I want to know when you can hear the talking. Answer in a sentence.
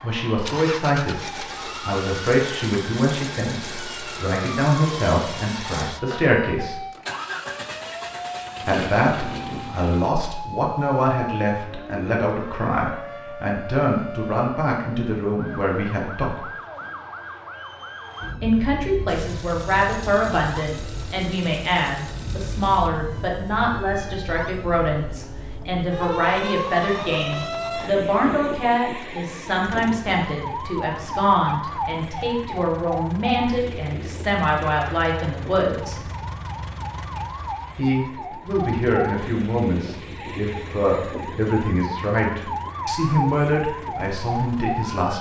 You can hear the talking from 0.0 to 1.1 s, from 1.8 to 6.8 s, from 8.7 to 16.4 s, from 18.4 to 36.0 s and from 37.8 to 45.1 s.